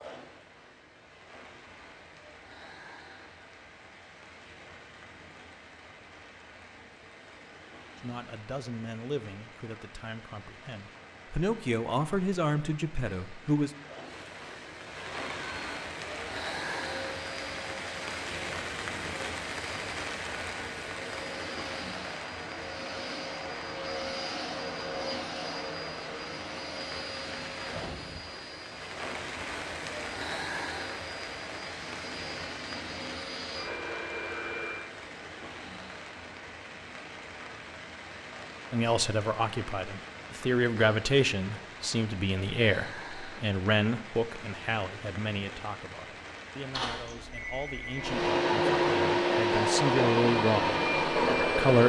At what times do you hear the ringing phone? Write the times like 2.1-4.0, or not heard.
46.7-48.0.